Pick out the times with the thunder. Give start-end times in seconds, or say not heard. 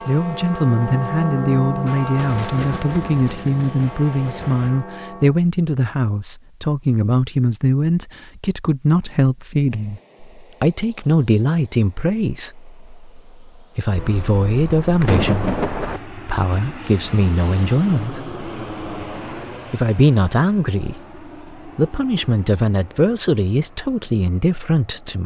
2.1-4.8, 13.9-16.0.